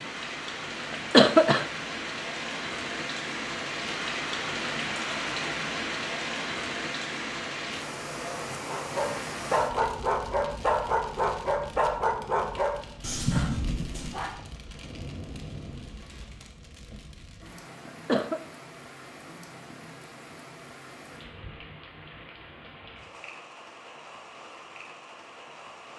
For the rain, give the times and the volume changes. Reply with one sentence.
You can hear the rain from 0.0 to 25.9 s, getting quieter.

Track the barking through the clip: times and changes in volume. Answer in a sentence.
The barking can be heard from 8.7 to 14.3 s, at a steady volume.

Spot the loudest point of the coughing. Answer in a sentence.
The volume of the coughing peaks at 1 second.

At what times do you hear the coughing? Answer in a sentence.
The coughing can be heard from 0.9 to 1.6 s and from 17.9 to 18.4 s.